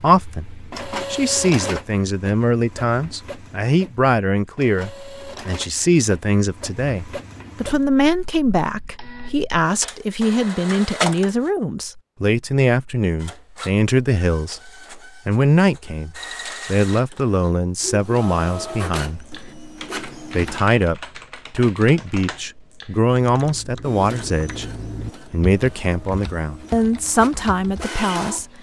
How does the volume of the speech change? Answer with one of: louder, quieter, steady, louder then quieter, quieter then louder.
steady.